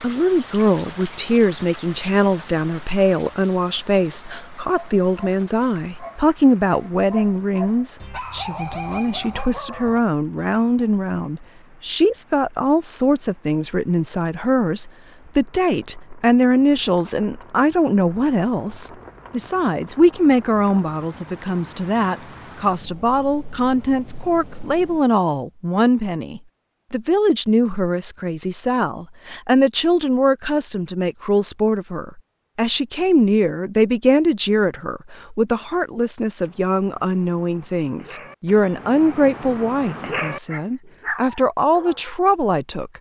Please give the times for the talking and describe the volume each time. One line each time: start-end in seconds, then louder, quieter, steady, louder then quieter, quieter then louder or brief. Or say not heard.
0.0-42.9 steady.